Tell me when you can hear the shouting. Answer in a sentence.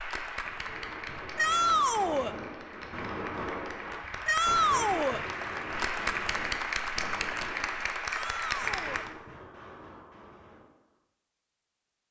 The shouting can be heard from 1.4 to 2.4 s, from 4.2 to 5.2 s and from 8.1 to 9.1 s.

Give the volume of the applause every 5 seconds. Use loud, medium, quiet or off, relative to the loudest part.
medium, loud, off.